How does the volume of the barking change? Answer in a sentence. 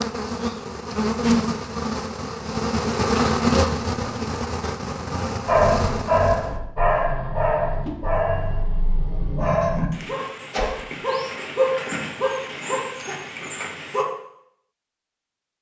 The loudness of the barking goes down.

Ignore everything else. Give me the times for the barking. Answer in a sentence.
The barking can be heard from 5.5 to 14.1 s.